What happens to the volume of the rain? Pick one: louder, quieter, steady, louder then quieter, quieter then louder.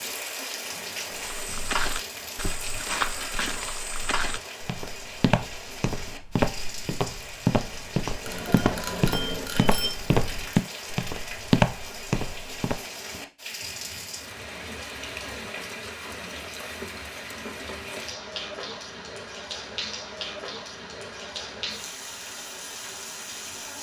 steady.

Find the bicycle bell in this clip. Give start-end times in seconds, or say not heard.
8.2-9.9.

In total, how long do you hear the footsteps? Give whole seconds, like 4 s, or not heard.
12 s.